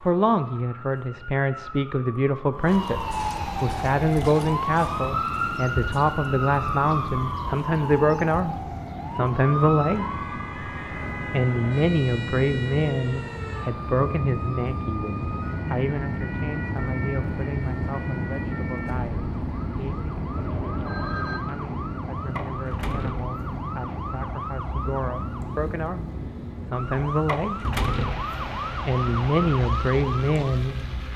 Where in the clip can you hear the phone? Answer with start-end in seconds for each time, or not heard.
20.4-21.4.